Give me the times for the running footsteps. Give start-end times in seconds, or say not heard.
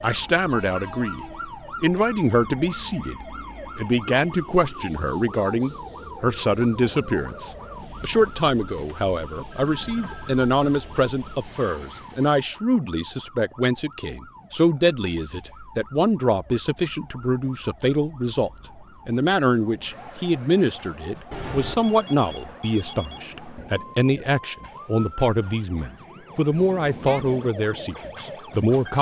not heard.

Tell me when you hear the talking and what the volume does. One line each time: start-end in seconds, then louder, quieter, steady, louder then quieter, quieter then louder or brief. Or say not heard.
0.0-28.9 steady.